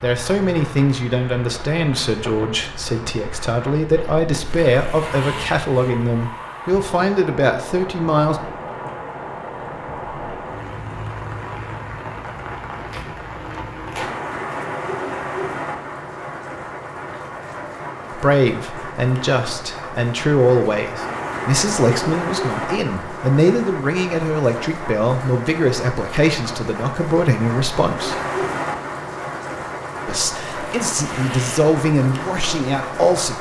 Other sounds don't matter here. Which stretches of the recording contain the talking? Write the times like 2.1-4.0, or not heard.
0.0-8.3, 18.1-28.1, 30.1-33.3.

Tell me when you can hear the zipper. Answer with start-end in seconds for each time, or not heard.
not heard.